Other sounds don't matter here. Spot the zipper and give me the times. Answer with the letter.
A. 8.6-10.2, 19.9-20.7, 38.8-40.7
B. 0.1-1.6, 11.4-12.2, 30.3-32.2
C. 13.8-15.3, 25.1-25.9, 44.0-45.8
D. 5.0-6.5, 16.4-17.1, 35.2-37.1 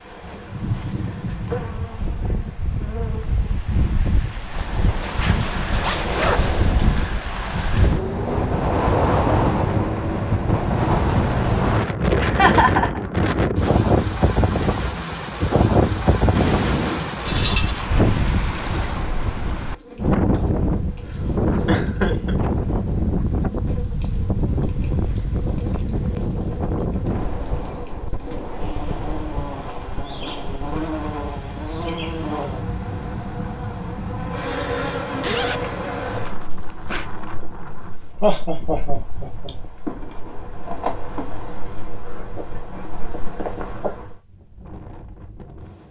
D.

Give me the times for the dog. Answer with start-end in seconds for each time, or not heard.
not heard.